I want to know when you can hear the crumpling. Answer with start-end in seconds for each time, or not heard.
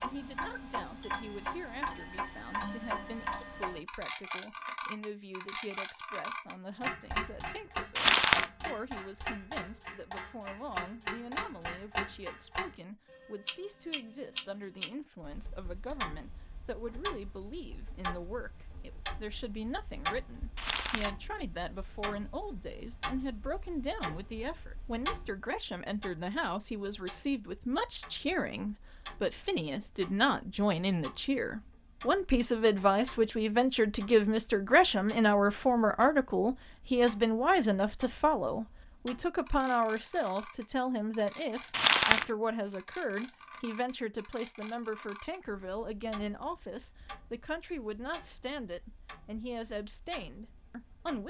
8.0-8.4, 20.6-21.1, 41.7-42.2.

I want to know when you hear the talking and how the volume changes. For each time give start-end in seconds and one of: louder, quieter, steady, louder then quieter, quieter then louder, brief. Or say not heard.
0.0-51.2 louder then quieter.